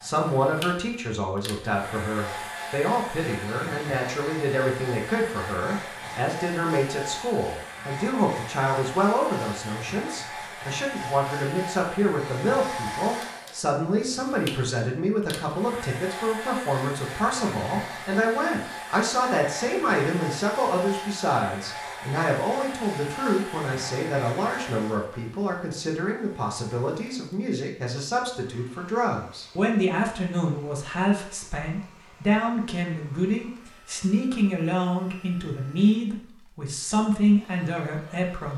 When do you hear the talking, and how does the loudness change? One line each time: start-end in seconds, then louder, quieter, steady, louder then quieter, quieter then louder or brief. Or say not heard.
0.0-38.5 steady.